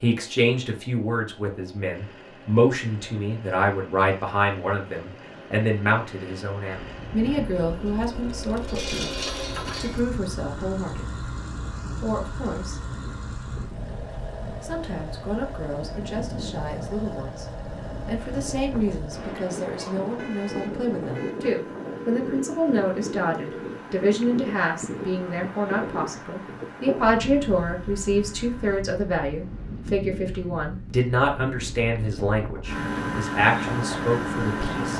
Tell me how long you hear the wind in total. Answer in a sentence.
You can hear the wind for 28 seconds altogether.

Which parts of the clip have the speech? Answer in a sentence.
The speech can be heard from 0.0 to 11.2 s, from 12.0 to 12.8 s and from 14.6 to 34.9 s.